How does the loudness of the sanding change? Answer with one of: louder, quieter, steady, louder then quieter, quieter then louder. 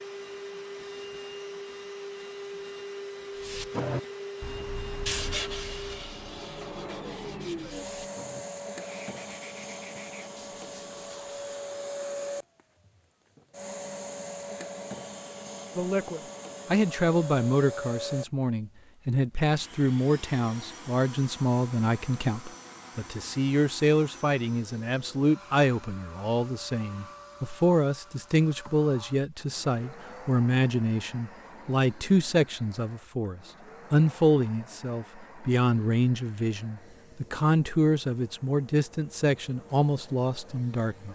quieter.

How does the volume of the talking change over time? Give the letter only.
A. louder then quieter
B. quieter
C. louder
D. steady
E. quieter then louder
D.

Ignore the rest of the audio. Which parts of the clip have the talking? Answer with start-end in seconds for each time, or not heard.
15.8-41.1.